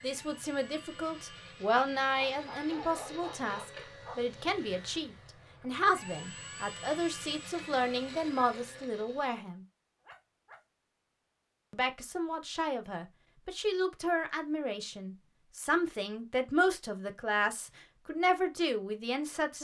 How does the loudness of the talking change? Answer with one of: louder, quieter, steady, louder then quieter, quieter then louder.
steady.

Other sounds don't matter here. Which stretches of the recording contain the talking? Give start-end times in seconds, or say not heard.
0.0-9.7, 11.7-19.6.